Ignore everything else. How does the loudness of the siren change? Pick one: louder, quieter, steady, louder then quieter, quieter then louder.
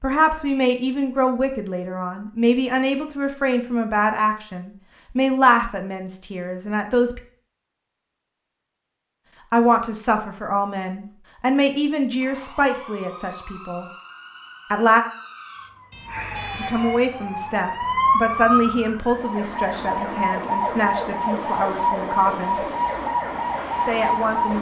louder.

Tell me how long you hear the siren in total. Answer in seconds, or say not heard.
12 s.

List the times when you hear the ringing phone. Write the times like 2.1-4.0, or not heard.
15.9-17.0.